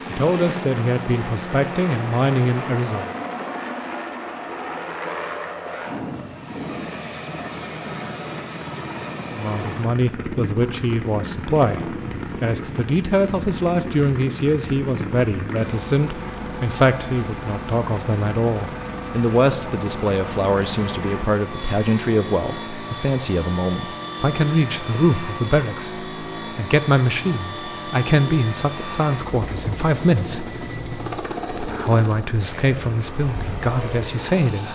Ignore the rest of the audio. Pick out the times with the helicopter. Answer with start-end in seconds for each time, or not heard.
0.0-34.7.